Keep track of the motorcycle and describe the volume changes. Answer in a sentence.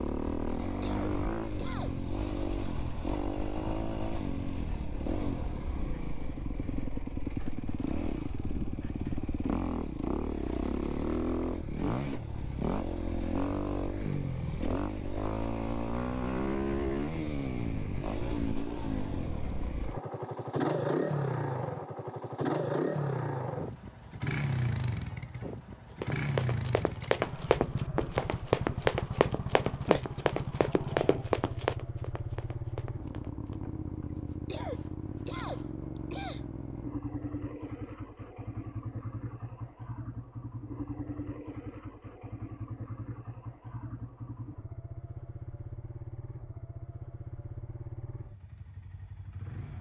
The loudness of the motorcycle goes down.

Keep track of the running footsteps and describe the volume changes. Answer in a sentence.
The loudness of the running footsteps goes down.